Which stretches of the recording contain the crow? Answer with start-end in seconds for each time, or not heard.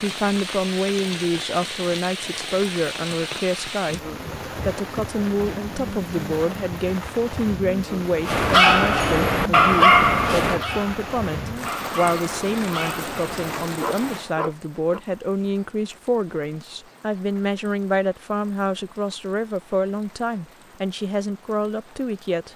not heard.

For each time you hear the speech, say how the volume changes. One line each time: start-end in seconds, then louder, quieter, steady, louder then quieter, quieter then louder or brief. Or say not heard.
0.0-4.0 steady
4.7-22.5 steady.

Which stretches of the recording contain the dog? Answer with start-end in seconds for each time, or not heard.
8.2-15.0.